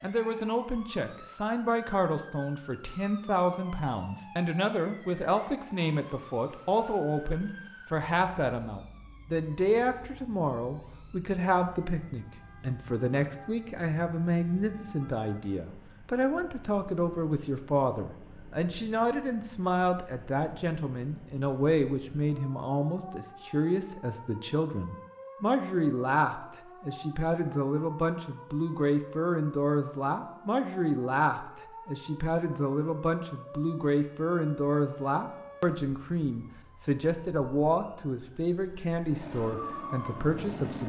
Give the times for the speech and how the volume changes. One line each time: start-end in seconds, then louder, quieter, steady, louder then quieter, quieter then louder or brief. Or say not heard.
0.0-40.8 steady.